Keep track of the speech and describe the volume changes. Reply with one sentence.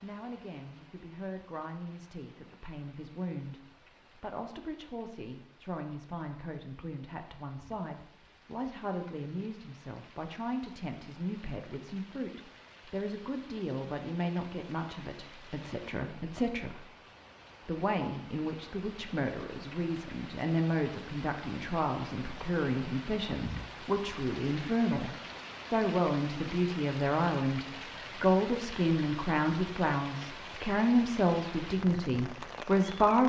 The volume of the speech goes up.